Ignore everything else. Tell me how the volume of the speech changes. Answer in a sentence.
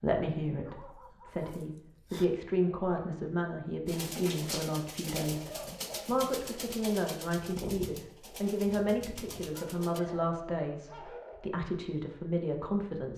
The volume of the speech stays about the same.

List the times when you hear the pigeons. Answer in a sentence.
The pigeons can be heard from 3.9 to 10.2 s.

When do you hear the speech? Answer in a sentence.
You can hear the speech from 0.0 to 13.1 s.